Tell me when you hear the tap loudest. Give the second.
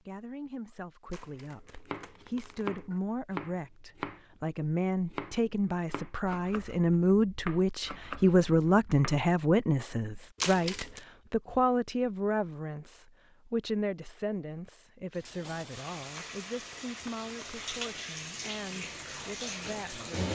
20 s.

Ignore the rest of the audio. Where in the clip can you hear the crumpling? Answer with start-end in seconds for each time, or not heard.
1.1-3.0, 10.4-11.1, 16.1-18.1.